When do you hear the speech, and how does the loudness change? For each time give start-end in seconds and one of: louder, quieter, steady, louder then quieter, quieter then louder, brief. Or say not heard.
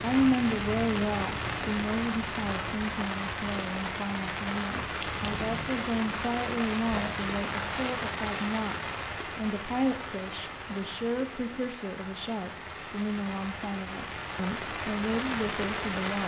0.0-16.2 steady.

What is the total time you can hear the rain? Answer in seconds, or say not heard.
16 s.